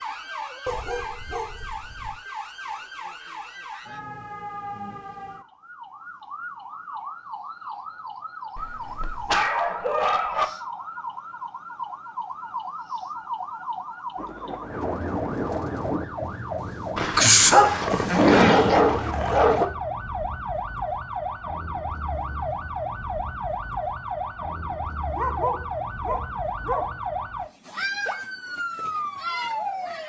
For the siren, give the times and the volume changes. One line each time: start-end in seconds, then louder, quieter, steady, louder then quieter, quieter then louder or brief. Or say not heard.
0.0-30.0 louder.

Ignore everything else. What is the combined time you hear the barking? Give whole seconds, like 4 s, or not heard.
8 s.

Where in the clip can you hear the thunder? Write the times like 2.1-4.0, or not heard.
14.2-16.1.